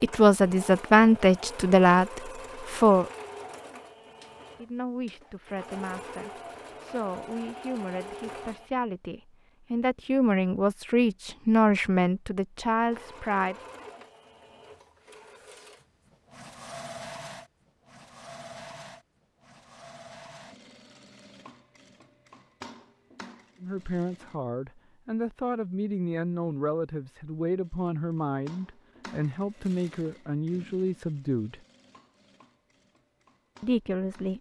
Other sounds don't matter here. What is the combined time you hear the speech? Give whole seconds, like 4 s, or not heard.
21 s.